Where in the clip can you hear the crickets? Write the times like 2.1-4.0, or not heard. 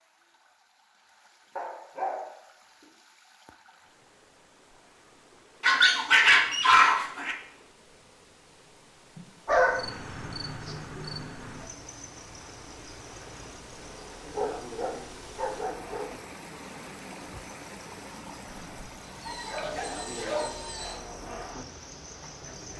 9.7-22.7.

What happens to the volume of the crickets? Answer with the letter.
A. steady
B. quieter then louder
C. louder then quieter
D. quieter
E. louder
B.